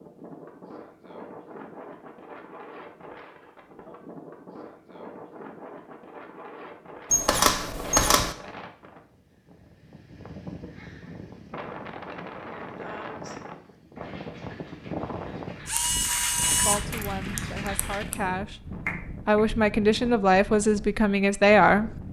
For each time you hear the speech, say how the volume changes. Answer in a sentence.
You can hear the speech from 16.4 to 21.9 s, getting louder.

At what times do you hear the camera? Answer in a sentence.
The camera can be heard from 7.1 to 8.3 s and from 15.7 to 18.1 s.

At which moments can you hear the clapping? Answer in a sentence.
You can hear the clapping from 13.9 to 18.1 s and from 18.9 to 19.4 s.